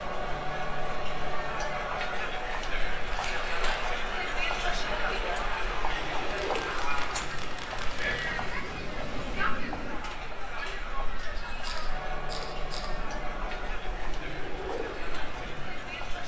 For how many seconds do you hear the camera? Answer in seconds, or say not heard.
4 s.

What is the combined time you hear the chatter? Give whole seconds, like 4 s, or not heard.
16 s.